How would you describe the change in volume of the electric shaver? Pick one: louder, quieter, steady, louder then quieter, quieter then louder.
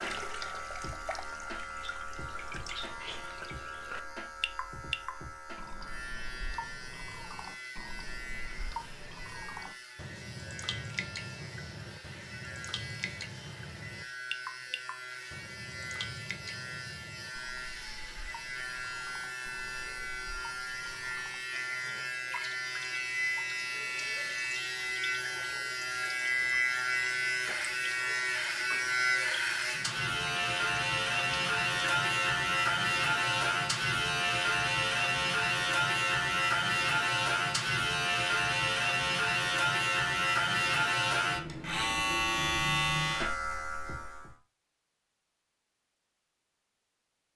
louder.